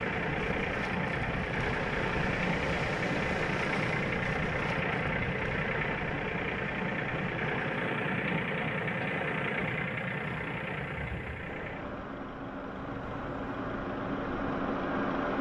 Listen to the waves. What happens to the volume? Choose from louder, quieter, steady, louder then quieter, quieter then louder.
quieter.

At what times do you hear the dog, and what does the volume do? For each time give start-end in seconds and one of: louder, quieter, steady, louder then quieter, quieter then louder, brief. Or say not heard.
not heard.